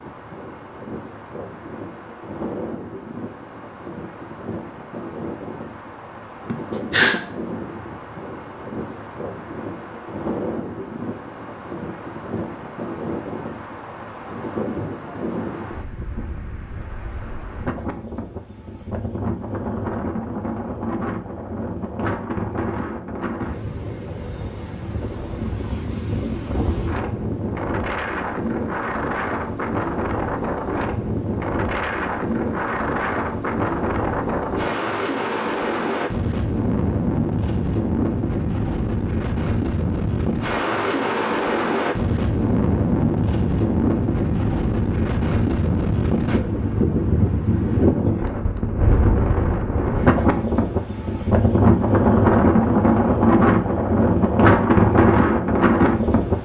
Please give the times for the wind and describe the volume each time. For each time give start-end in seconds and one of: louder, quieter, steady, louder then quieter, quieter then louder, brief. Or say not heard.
0.0-56.3 louder.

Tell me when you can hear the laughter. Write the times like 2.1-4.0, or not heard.
6.5-7.2.